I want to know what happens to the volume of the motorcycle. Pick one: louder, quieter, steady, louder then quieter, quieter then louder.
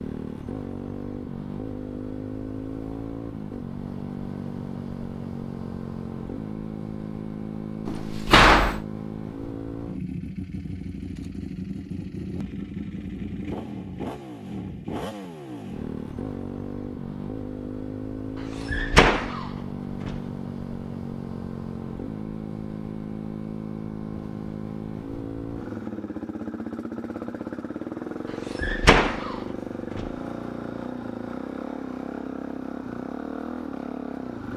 steady.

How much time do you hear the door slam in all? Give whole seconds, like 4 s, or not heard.
4 s.